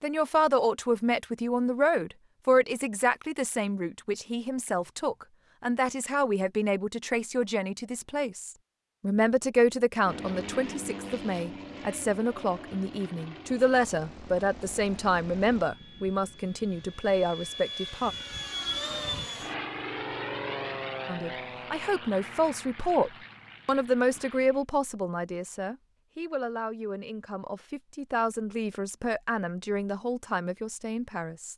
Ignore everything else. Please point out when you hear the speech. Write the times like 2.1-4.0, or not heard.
0.0-18.1, 21.1-31.5.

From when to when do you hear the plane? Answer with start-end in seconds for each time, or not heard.
10.1-24.6.